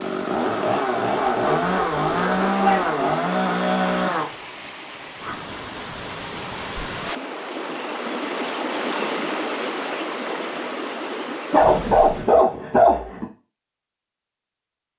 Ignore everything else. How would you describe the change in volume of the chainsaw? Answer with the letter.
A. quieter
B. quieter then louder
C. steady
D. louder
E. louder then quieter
C.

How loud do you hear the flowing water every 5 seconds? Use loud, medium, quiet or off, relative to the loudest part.
medium, loud, loud.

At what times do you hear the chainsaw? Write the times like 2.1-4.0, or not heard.
0.0-4.3.